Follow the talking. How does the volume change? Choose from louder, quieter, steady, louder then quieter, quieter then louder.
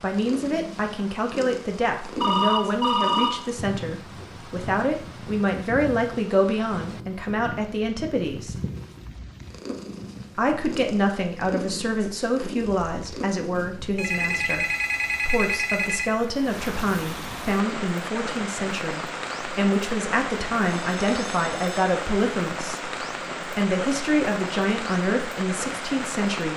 steady.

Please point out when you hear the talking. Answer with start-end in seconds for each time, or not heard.
0.0-8.6, 10.3-14.7, 15.2-26.5.